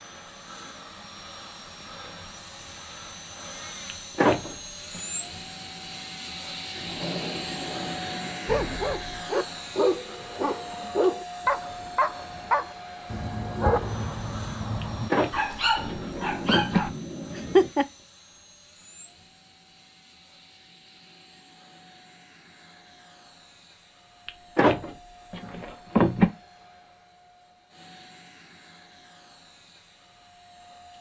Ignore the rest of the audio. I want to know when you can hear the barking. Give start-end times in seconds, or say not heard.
8.4-17.9.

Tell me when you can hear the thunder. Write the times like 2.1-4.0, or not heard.
6.8-8.8, 15.8-17.7.